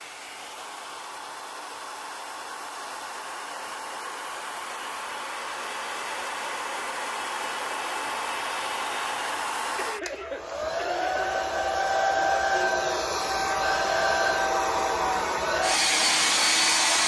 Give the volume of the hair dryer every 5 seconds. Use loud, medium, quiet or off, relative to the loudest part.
quiet, medium, loud, loud.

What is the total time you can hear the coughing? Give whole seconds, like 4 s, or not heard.
2 s.